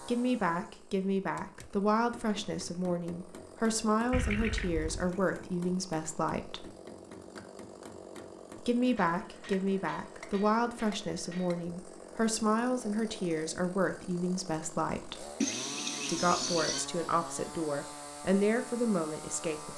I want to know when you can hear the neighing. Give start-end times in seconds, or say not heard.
4.1-5.1, 15.4-16.9.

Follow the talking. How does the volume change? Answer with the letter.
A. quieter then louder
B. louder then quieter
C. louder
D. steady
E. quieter
D.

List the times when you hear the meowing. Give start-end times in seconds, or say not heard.
not heard.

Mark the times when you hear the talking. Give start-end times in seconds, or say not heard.
0.1-6.7, 8.6-15.2, 16.1-19.7.